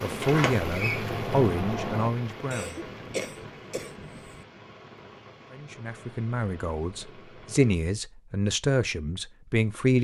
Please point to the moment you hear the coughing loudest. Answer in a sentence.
The volume of the coughing peaks at 3 seconds.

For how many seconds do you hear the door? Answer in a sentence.
You can hear the door for 2 seconds altogether.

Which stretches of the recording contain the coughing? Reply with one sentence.
The coughing can be heard from 2.5 to 4.5 s.